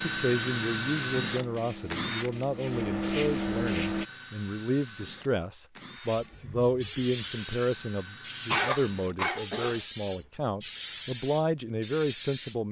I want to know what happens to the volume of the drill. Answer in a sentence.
The loudness of the drill goes down.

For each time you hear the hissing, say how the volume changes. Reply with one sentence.
The hissing can be heard from 0.0 to 4.0 s, getting louder; and from 6.0 to 12.6 s, at a steady volume.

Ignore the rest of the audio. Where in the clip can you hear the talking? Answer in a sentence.
The talking can be heard from 0.0 to 12.6 s.